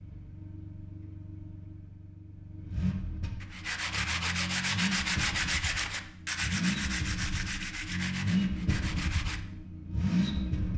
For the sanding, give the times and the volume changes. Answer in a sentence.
You can hear the sanding from 3.4 to 9.4 s, getting quieter.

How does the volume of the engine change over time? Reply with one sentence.
The loudness of the engine goes up.